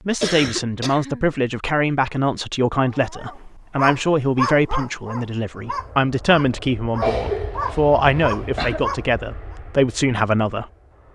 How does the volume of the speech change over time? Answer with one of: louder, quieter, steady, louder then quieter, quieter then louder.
steady.